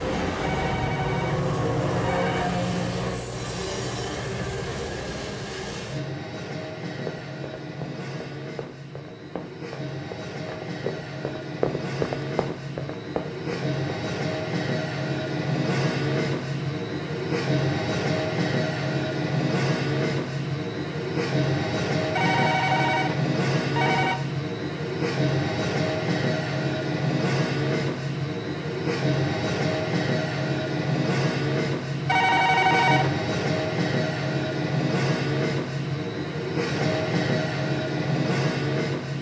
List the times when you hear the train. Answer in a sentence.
You can hear the train from 0.0 to 39.1 s.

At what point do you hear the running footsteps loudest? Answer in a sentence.
The loudest moment of the running footsteps is at 12 seconds.